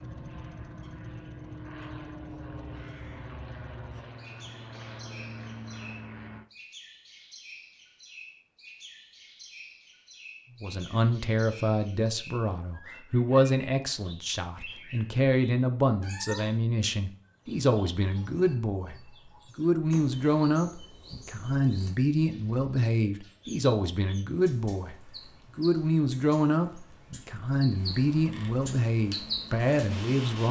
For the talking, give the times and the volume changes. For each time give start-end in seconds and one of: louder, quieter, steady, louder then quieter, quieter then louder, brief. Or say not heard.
10.6-30.4 steady.